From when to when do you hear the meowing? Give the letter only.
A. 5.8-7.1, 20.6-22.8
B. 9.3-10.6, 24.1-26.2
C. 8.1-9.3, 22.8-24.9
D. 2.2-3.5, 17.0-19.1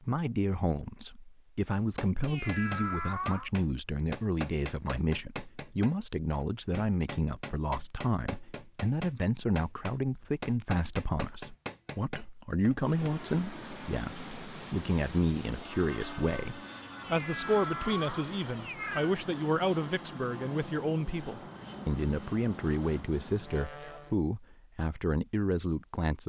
D.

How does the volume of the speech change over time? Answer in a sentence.
The loudness of the speech stays about the same.